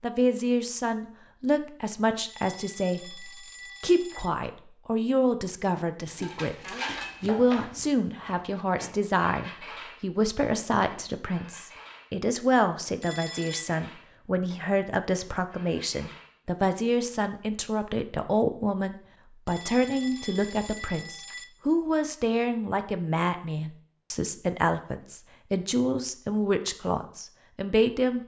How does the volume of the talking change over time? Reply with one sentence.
The loudness of the talking stays about the same.